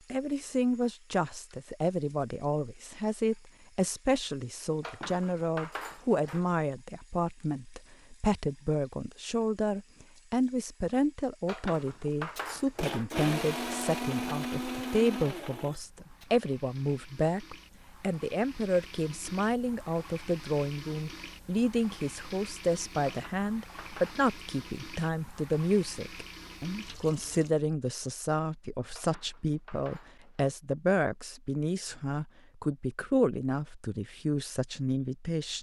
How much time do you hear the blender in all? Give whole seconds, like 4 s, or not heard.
4 s.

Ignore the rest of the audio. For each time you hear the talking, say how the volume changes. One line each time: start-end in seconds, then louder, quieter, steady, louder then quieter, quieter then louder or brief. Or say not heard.
0.1-35.5 steady.